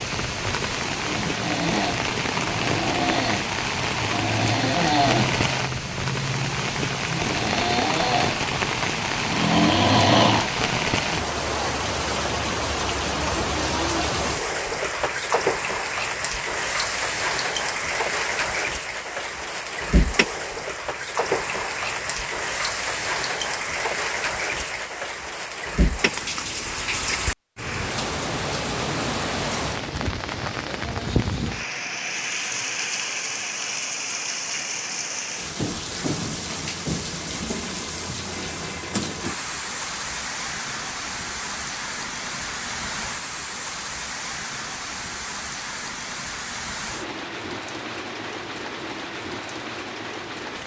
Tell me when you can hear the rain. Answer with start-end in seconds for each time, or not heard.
0.0-50.6.